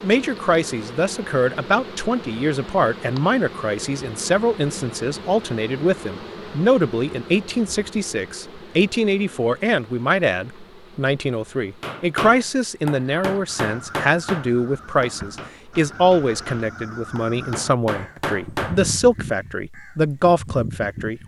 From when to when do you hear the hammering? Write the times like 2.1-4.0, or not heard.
11.8-18.9.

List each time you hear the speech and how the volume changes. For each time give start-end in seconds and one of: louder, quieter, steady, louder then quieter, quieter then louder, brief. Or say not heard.
0.0-21.2 steady.